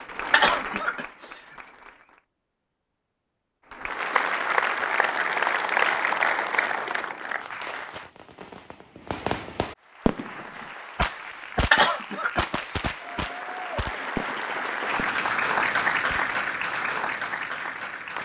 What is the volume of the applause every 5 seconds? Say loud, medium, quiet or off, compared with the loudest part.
loud, loud, medium, loud.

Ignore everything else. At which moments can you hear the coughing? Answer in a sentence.
You can hear the coughing from 0.3 to 1.3 s and from 11.7 to 12.7 s.